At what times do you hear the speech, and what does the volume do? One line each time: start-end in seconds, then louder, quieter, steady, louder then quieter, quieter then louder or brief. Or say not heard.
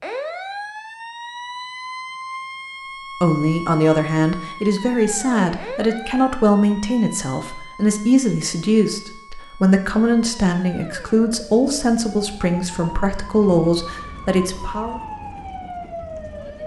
3.2-15.0 steady.